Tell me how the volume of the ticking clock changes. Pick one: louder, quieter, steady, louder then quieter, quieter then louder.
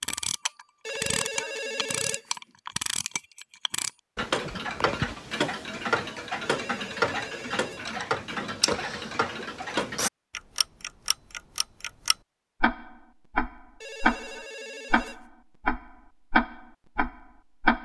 louder.